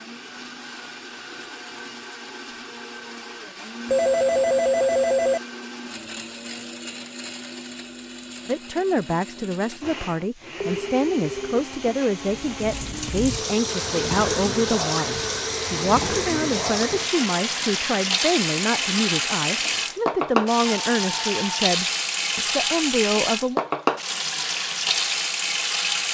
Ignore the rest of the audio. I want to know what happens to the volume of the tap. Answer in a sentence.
The volume of the tap stays about the same.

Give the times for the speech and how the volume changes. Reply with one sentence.
You can hear the speech from 8.4 to 23.6 s, at a steady volume.